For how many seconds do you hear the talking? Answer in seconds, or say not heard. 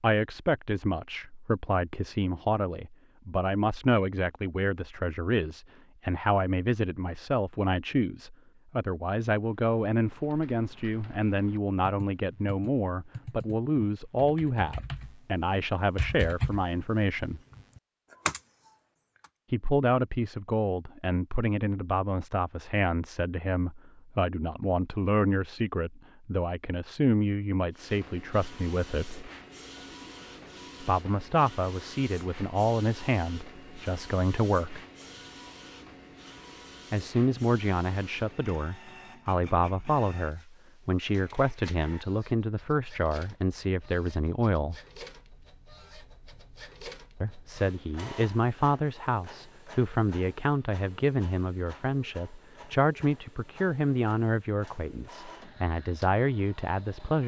49 s.